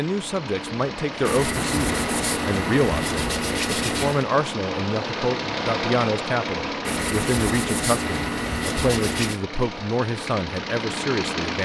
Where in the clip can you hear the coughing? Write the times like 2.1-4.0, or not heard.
not heard.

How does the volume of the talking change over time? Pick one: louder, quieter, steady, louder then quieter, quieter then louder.
steady.